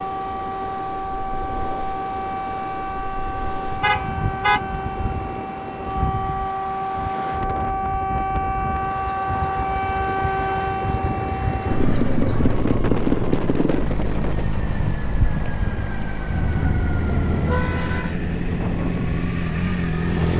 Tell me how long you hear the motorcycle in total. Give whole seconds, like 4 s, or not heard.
9 s.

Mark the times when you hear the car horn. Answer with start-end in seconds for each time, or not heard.
3.8-4.6, 16.3-18.1.